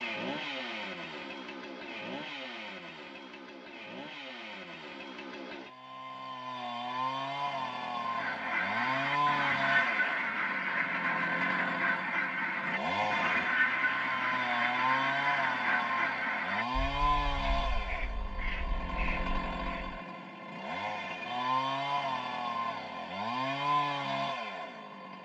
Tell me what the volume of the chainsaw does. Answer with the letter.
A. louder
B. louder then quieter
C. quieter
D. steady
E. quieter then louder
A.